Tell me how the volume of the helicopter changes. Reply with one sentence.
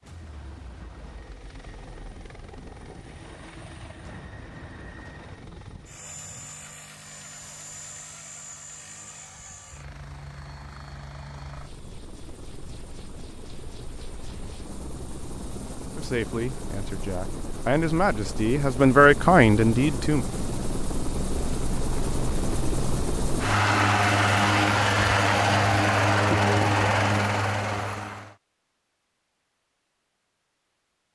The loudness of the helicopter goes up.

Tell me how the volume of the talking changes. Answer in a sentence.
The loudness of the talking goes up.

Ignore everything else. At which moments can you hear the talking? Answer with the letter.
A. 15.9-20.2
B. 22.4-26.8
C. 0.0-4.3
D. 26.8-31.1
A.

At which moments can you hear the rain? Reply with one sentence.
The rain can't be heard in this clip.